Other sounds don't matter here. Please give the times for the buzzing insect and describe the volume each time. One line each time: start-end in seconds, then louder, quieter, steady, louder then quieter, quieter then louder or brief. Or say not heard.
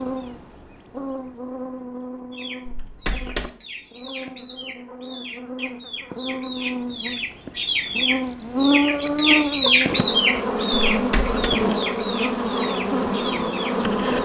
0.0-14.2 louder.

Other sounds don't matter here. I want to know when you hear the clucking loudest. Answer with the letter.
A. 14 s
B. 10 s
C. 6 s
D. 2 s
B.